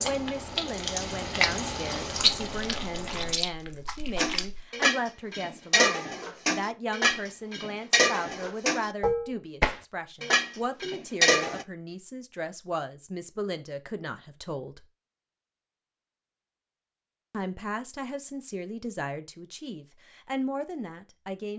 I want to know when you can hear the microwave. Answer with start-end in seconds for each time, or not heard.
not heard.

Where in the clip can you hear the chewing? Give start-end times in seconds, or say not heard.
2.1-4.7.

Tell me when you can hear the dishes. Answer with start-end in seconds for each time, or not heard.
4.2-11.7.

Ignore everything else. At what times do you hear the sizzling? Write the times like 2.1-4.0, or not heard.
0.0-3.4.